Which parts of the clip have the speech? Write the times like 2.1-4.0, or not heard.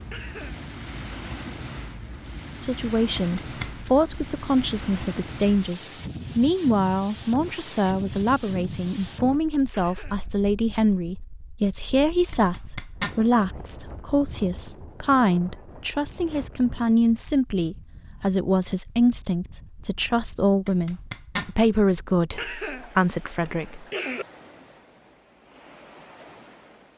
2.5-23.9.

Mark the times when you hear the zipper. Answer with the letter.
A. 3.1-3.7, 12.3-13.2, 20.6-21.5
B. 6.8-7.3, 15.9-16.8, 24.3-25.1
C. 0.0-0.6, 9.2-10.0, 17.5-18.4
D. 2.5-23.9
A.